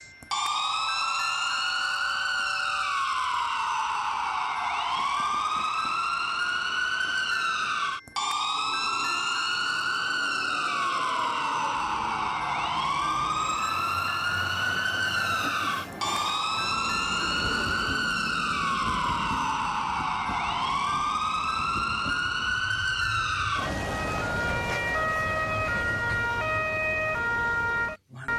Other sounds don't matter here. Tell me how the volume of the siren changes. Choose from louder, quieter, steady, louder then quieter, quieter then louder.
steady.